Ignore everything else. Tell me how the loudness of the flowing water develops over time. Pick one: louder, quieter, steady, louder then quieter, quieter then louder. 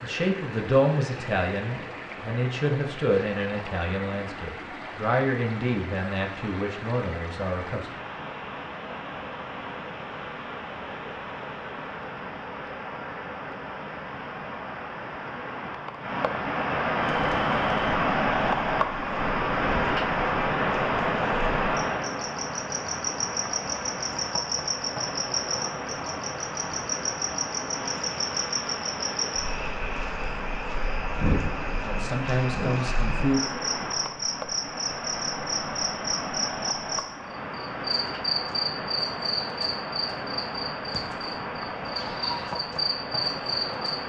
louder then quieter.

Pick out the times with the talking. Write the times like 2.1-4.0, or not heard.
0.0-7.9, 31.8-33.5.